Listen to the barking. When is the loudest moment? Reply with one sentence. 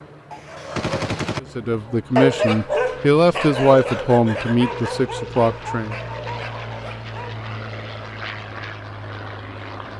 The loudest moment of the barking is at 2 seconds.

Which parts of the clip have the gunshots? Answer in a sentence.
You can hear the gunshots from 0.3 to 1.4 s.